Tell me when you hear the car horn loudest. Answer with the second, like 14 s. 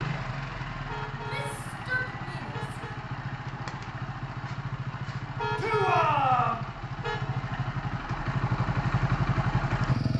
6 s.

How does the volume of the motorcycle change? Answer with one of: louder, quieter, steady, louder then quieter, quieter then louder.
louder.